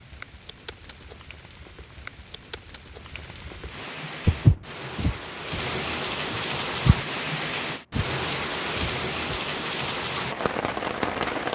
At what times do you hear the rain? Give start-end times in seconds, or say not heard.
0.0-11.5.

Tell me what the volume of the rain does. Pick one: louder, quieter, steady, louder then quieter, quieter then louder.
louder.